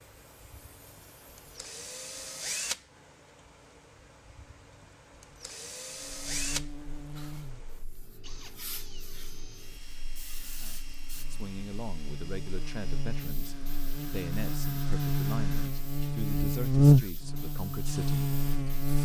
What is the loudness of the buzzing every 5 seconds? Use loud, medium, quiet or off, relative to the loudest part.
off, quiet, quiet, loud.